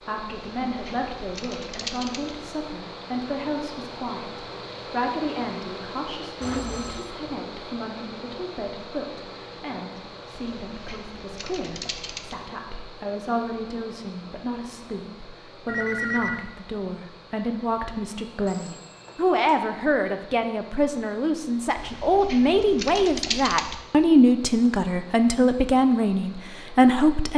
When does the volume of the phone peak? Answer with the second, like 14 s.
16 s.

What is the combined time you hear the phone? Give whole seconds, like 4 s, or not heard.
3 s.